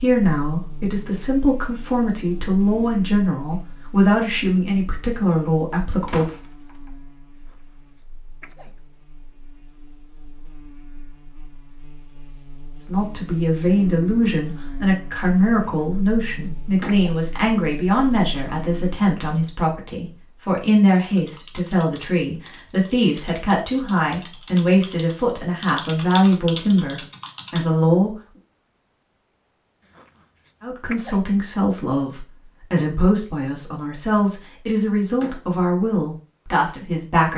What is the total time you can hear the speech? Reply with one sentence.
You can hear the speech for 28 seconds altogether.